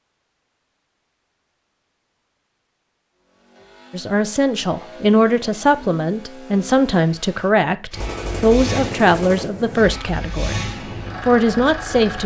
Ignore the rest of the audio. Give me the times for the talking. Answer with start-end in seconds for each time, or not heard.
3.9-12.2.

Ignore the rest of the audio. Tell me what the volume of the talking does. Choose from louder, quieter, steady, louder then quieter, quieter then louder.
steady.